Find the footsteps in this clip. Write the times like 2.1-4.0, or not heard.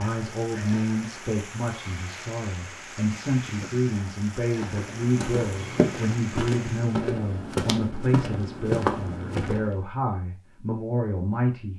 4.6-9.8.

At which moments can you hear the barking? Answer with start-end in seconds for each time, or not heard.
not heard.